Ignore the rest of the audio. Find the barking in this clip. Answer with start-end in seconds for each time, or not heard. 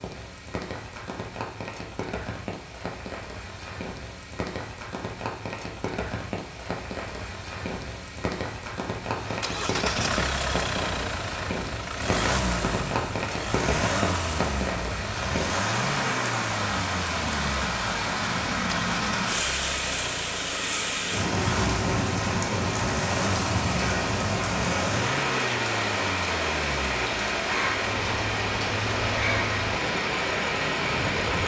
not heard.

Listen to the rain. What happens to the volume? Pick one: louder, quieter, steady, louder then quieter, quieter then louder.
louder.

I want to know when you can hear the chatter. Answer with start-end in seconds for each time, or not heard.
not heard.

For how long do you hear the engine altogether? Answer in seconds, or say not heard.
22 s.